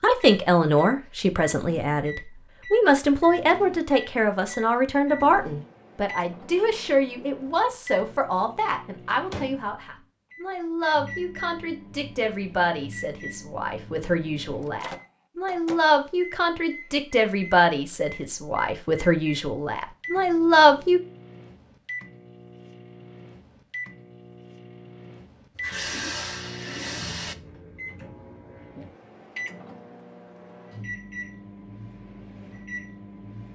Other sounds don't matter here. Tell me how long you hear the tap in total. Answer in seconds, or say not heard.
2 s.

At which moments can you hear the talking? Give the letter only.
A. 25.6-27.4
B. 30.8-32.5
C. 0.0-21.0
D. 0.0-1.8
C.